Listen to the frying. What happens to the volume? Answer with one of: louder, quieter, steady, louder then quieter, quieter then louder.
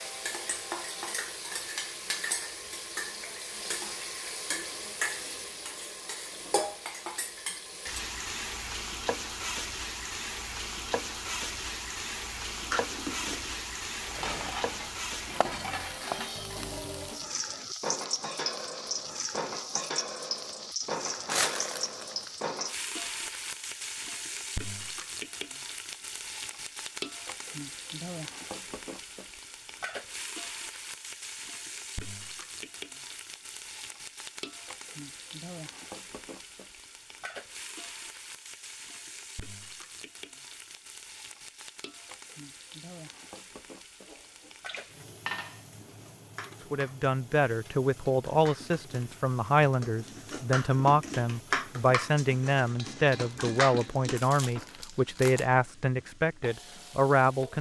quieter.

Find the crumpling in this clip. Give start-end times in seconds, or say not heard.
21.2-22.5, 53.3-55.5.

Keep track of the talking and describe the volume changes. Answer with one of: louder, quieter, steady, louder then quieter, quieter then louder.
steady.